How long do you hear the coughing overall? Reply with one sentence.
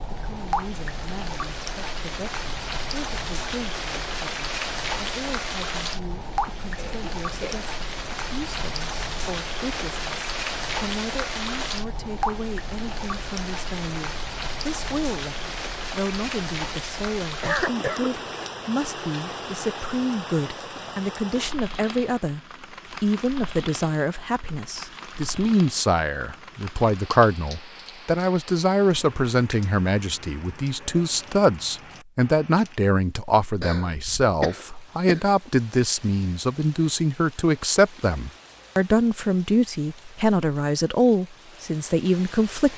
The coughing can be heard for 3 seconds in total.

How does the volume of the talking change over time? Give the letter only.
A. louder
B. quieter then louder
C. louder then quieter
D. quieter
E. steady
A.